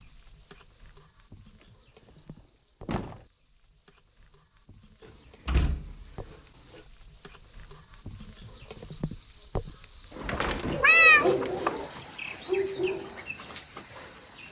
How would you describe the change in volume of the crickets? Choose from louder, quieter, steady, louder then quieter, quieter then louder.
louder.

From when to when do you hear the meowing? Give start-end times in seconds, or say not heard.
10.3-11.7.